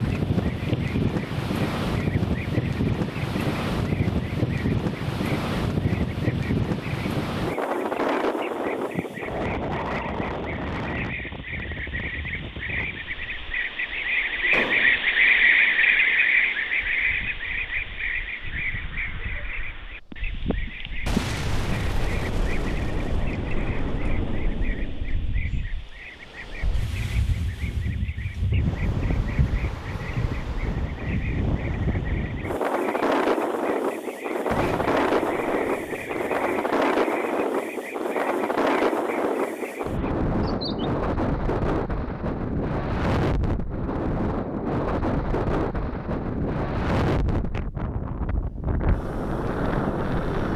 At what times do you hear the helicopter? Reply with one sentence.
You can't hear the helicopter here.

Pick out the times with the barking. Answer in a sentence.
You can't hear the barking here.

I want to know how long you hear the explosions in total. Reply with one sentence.
The explosions can be heard for 7 seconds in total.